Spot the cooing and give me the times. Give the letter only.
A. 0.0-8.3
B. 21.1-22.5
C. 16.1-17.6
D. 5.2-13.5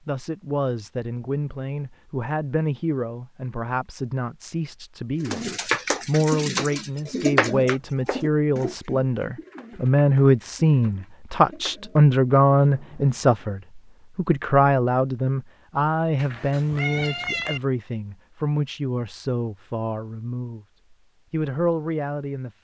D.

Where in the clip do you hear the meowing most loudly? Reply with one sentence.
The volume of the meowing peaks at 17 seconds.